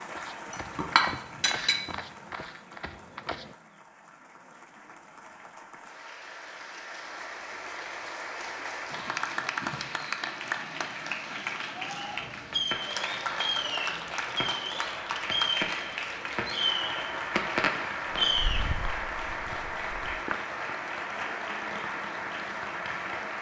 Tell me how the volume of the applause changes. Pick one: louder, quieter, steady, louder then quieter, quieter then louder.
louder.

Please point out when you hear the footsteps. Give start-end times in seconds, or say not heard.
0.0-3.5, 18.3-20.4.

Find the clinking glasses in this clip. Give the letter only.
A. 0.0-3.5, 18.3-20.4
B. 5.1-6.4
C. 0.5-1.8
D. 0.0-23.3
C.